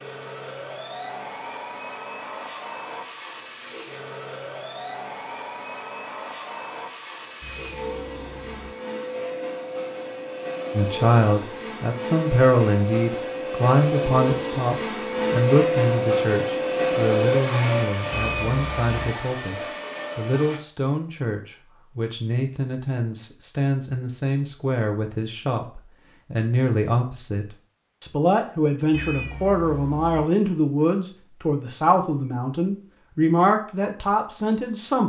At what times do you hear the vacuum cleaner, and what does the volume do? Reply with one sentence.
The vacuum cleaner can be heard from 0.0 to 20.6 s, getting louder.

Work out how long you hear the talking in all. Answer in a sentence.
The talking can be heard for 24 seconds in total.